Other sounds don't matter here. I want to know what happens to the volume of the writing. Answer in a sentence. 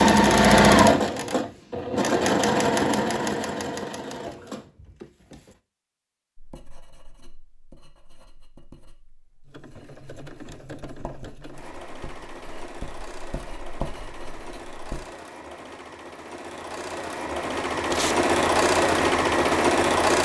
The volume of the writing goes up.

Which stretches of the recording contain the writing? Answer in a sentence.
You can hear the writing from 6.3 to 15.1 s.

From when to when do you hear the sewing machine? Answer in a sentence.
The sewing machine can be heard from 0.0 to 5.3 s and from 9.4 to 20.2 s.